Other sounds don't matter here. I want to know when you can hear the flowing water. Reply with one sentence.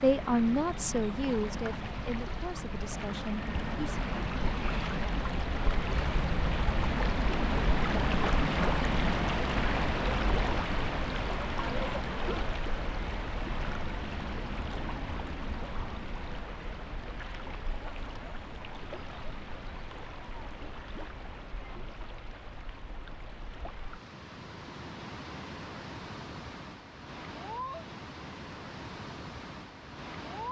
You can hear the flowing water from 0.0 to 30.4 s.